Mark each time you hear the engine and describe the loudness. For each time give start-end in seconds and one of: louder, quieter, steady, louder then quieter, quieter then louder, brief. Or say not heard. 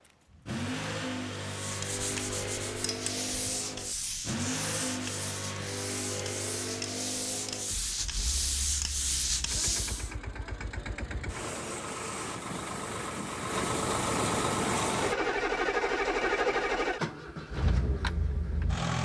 0.1-18.9 quieter then louder.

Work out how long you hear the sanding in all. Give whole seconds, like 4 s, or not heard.
9 s.